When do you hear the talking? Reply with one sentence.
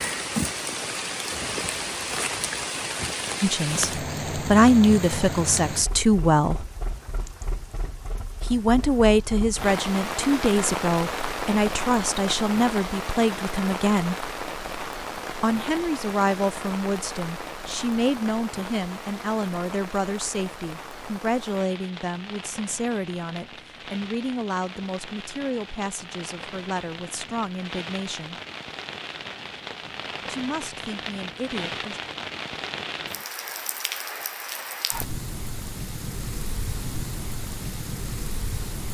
You can hear the talking from 3.4 to 6.7 s, from 8.4 to 14.2 s, from 15.3 to 28.4 s and from 30.2 to 32.0 s.